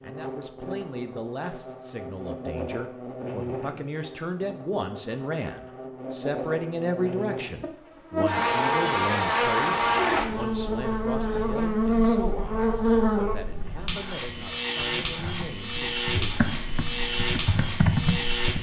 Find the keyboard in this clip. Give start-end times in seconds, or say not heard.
13.6-18.5.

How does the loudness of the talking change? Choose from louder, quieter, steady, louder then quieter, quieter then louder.
louder then quieter.